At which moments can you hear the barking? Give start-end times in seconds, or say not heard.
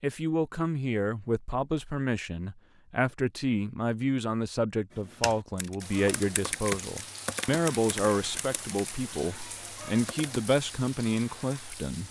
not heard.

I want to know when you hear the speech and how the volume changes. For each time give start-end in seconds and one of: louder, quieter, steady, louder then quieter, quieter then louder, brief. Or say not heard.
0.0-12.0 steady.